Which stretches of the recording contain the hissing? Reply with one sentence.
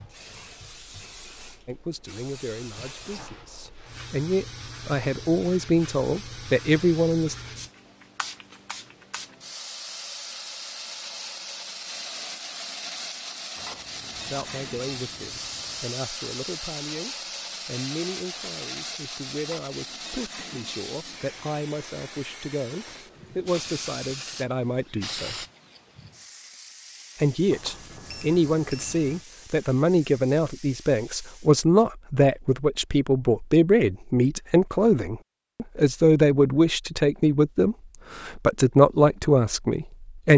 You can hear the hissing from 0.0 to 31.6 s.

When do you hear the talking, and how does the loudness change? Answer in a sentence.
You can hear the talking from 1.6 to 7.3 s, getting quieter then louder; from 14.2 to 25.4 s, getting louder; and from 27.1 to 40.3 s, at a steady volume.